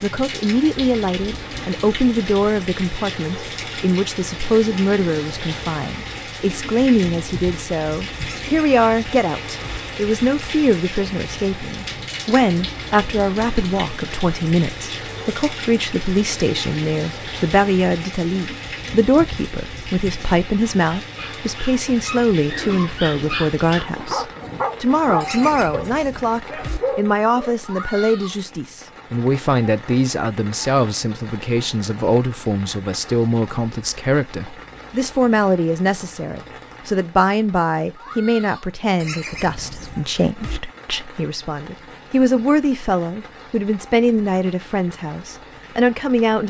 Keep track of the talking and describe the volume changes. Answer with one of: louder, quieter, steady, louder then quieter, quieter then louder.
steady.